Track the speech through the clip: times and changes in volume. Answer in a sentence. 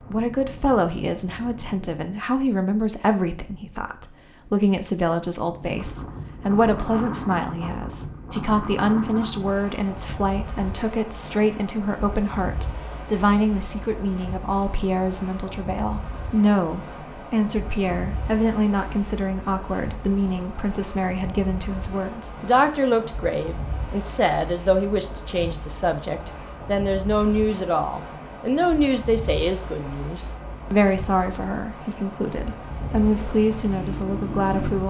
You can hear the speech from 0.1 to 34.8 s, at a steady volume.